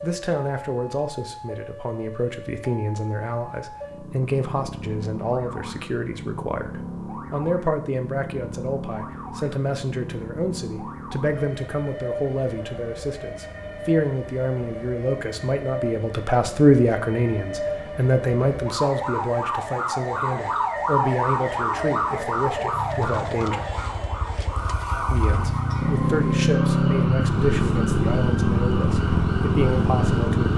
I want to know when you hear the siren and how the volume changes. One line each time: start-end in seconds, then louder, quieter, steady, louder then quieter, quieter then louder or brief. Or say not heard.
0.0-30.5 louder then quieter.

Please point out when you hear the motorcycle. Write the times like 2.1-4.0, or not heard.
22.7-30.5.